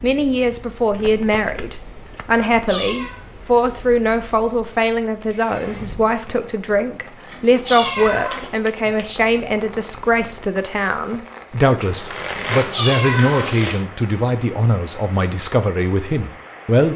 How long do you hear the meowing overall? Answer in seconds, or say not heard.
3 s.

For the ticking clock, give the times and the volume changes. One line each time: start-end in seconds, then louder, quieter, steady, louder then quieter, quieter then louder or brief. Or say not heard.
not heard.